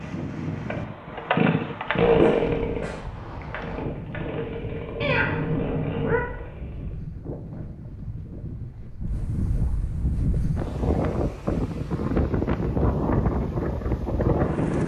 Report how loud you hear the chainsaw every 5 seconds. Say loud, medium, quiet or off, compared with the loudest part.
loud, medium, off.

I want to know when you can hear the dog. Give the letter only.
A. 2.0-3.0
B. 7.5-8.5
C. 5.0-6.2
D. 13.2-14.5
A.